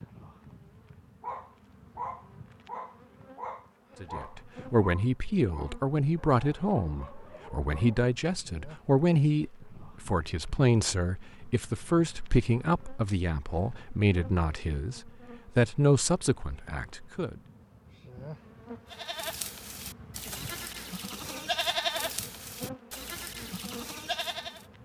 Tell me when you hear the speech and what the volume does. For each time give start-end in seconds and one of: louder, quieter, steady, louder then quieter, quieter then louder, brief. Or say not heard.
4.0-17.4 steady.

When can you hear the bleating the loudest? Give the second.
22 s.